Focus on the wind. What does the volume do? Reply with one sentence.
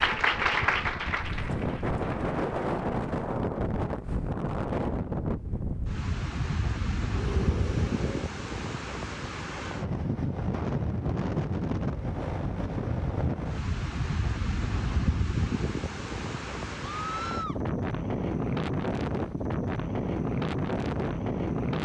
The volume of the wind stays about the same.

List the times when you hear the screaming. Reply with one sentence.
The screaming can be heard from 7.2 to 8.2 s and from 17.0 to 17.6 s.